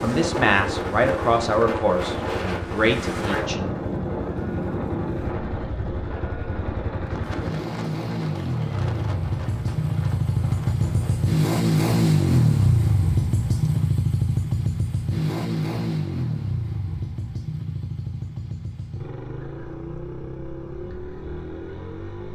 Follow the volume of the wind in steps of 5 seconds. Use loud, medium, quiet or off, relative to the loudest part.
loud, medium, quiet, off, off.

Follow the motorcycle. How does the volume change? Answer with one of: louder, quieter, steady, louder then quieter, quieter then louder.
louder then quieter.